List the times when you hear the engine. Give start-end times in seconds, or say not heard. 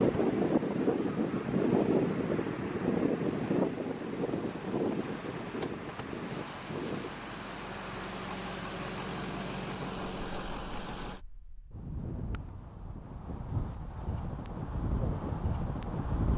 0.0-11.2.